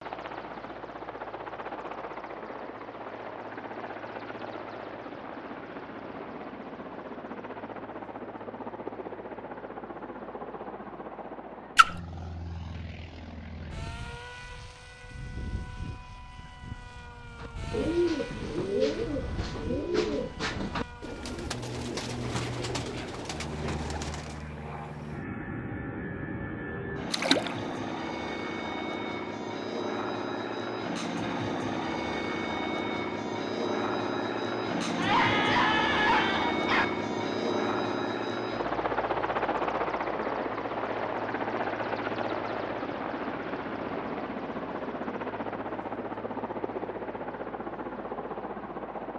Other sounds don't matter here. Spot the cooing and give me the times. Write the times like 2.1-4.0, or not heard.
17.4-24.6.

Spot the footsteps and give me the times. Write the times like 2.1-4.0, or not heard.
not heard.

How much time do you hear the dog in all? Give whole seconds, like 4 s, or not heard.
2 s.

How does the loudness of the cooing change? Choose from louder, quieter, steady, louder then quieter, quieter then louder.
quieter.